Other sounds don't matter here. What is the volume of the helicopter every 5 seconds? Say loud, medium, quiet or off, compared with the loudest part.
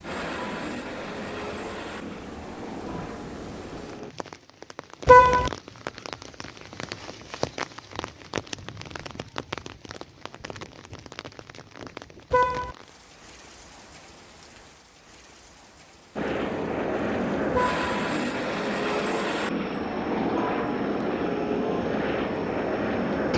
medium, off, off, loud, loud.